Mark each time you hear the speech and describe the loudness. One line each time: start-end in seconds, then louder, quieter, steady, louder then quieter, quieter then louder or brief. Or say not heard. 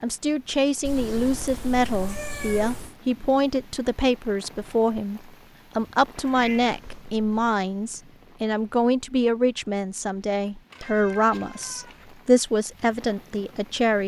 0.0-14.0 steady.